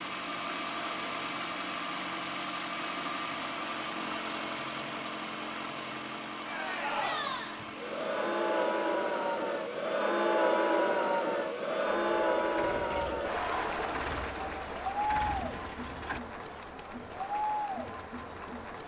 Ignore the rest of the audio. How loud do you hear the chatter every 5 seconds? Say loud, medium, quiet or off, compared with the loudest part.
off, loud, loud, medium.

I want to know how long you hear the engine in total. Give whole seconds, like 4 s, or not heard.
16 s.